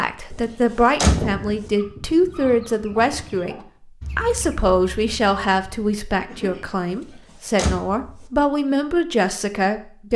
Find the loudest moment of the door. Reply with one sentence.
The loudest moment of the door is at 1 second.